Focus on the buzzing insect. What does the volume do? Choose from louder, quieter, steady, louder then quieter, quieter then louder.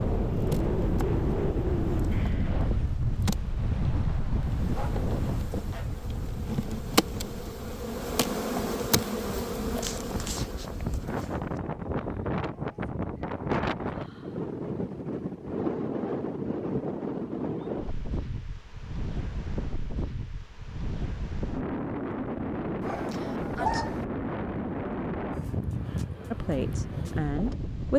louder.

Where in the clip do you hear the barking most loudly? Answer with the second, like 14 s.
24 s.